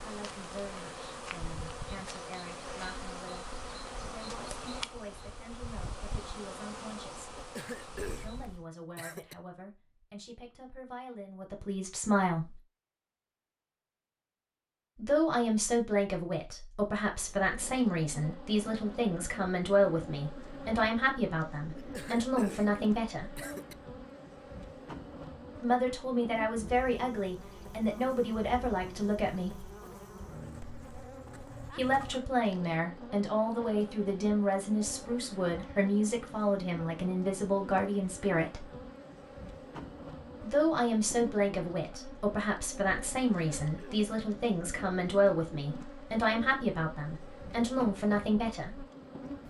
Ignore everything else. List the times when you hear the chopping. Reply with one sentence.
The chopping can't be heard in this clip.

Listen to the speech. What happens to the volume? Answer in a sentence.
The volume of the speech goes up.